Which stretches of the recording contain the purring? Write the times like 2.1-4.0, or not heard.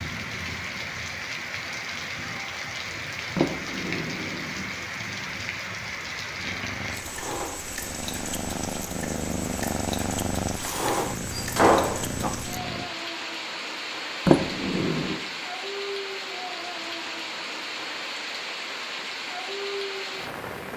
6.4-12.8.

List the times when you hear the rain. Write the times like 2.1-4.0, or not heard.
0.0-20.7.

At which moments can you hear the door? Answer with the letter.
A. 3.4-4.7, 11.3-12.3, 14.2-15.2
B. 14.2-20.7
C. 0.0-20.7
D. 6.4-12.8
A.